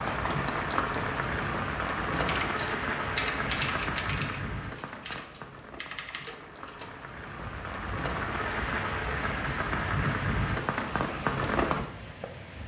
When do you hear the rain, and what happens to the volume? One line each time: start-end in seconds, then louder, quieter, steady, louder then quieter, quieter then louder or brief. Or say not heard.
0.0-12.6 quieter then louder.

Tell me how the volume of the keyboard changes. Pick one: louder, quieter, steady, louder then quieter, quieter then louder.
quieter.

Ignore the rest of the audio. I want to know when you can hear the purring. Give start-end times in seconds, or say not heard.
not heard.